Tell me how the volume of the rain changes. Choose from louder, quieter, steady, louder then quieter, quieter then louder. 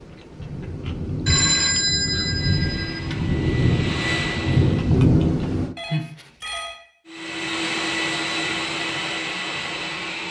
louder.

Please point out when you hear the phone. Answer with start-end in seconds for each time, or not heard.
1.2-3.0, 5.8-6.8.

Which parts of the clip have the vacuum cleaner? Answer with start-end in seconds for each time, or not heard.
2.1-5.0, 7.0-10.2.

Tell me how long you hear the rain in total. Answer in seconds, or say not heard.
6 s.